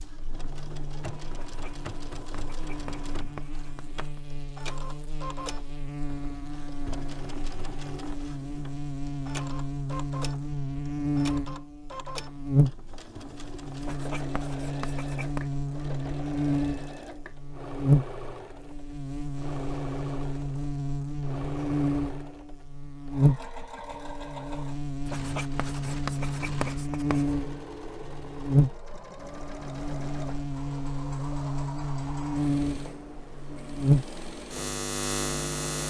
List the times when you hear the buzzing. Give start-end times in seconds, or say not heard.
0.0-35.8.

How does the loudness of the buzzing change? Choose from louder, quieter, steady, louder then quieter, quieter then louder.
louder.